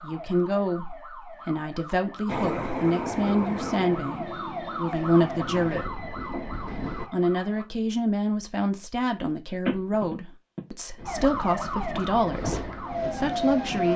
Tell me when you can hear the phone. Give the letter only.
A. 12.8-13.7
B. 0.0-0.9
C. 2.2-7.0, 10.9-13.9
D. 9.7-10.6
D.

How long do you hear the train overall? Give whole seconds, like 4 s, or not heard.
8 s.